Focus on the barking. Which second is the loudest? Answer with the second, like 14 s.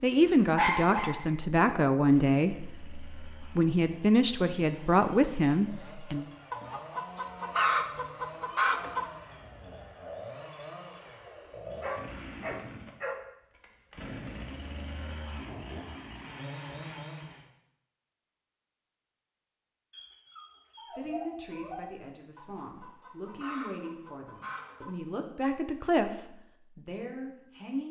1 s.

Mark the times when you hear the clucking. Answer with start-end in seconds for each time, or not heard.
6.5-9.1, 22.4-24.9.